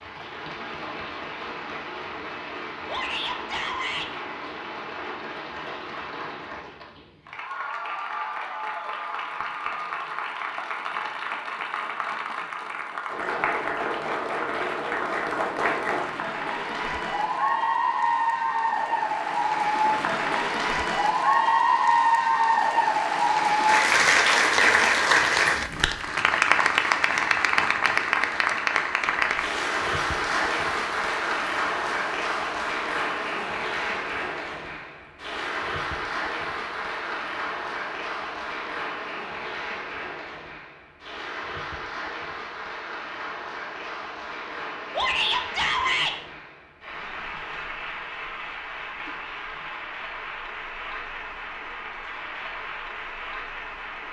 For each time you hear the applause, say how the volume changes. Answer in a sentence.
The applause can be heard from 0.0 to 54.0 s, getting louder then quieter.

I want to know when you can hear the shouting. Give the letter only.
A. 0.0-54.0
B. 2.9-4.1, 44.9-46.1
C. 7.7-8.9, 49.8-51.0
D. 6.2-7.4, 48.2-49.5
B.